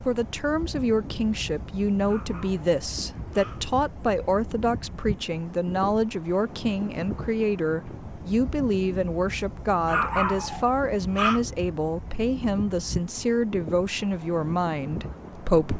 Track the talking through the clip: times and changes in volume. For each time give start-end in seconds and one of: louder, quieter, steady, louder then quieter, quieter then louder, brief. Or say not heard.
0.0-15.7 steady.